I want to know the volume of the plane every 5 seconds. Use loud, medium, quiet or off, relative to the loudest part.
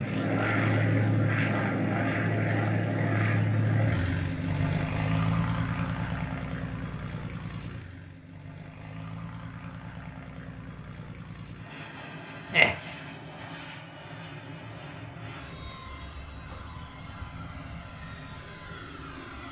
loud, medium, quiet, quiet.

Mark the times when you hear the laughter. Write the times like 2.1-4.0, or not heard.
12.5-12.9.